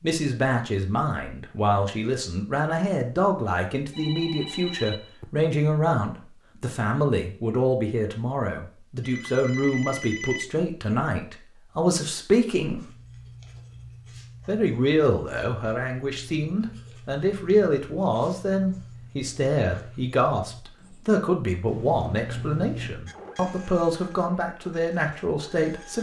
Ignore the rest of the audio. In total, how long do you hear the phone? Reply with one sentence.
You can hear the phone for 4 seconds altogether.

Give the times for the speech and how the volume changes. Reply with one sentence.
You can hear the speech from 0.0 to 12.8 s, at a steady volume; and from 14.4 to 25.9 s, at a steady volume.